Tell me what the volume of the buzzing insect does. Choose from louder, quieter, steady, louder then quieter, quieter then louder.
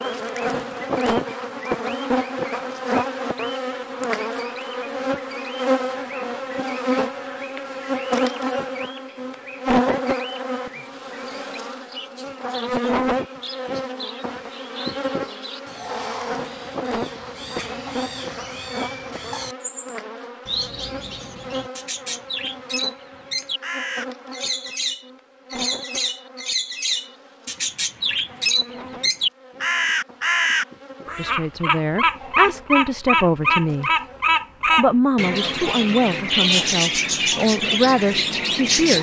quieter.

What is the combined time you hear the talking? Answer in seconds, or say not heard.
7 s.